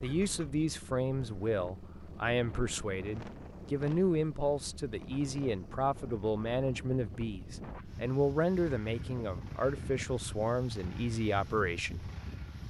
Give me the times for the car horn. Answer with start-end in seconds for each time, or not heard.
not heard.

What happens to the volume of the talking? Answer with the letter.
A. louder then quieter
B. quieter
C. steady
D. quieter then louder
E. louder
C.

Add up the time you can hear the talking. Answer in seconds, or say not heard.
12 s.